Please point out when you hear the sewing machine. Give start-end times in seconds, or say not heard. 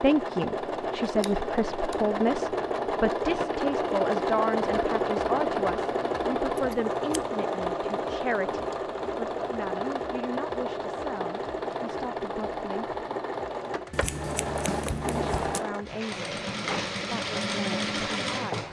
0.0-18.6.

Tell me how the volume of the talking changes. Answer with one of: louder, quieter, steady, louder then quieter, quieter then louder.
quieter.